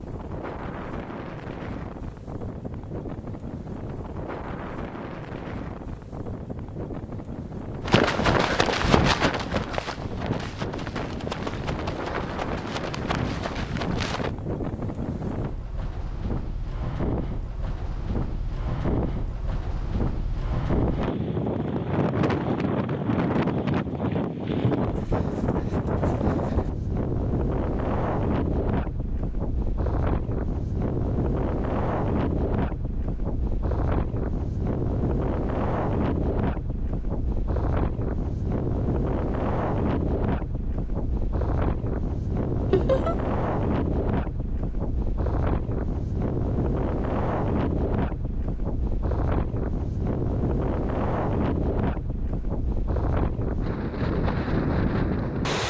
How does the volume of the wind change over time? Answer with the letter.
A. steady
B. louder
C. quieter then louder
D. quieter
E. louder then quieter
B.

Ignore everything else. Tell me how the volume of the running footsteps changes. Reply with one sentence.
The loudness of the running footsteps goes down.